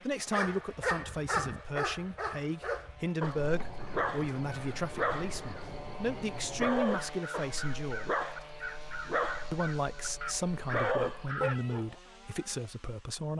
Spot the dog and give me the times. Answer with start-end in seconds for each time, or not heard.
0.3-11.8.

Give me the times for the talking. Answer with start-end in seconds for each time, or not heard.
0.0-8.1, 9.5-13.3.